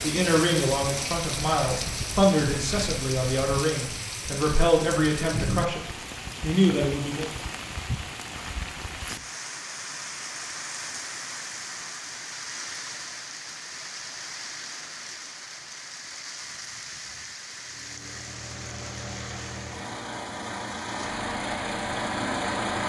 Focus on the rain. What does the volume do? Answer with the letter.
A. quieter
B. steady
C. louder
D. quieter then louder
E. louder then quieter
A.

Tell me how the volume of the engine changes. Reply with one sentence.
The volume of the engine goes up.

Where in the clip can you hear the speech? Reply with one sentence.
The speech can be heard from 0.0 to 7.3 s.